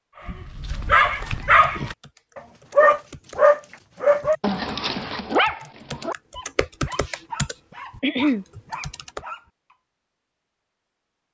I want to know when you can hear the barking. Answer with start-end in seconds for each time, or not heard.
0.2-9.8.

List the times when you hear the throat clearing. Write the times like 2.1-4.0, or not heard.
8.0-8.4.